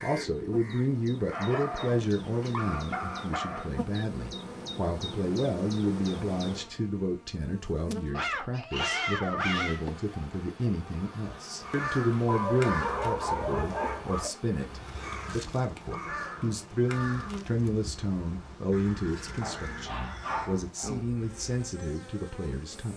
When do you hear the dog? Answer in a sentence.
You can hear the dog from 1.3 to 3.8 s, from 8.1 to 9.8 s, from 12.2 to 14.3 s and from 19.4 to 21.0 s.